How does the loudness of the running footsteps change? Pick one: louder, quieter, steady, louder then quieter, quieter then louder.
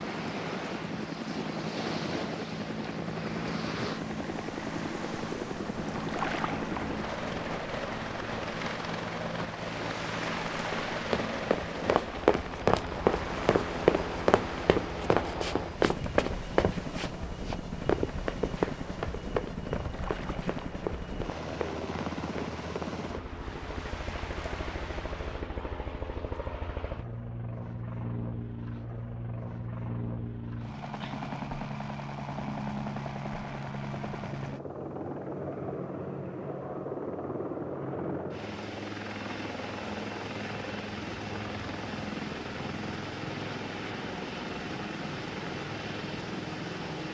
quieter.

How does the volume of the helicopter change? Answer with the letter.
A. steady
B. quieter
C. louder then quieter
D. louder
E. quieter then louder
A.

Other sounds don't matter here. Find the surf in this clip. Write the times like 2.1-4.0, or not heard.
0.0-25.4.